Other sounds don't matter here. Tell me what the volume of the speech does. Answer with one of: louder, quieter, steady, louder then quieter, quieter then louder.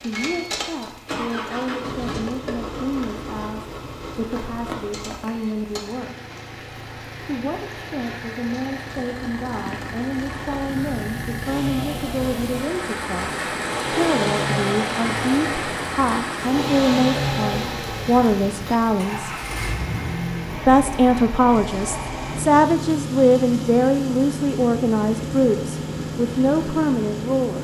louder.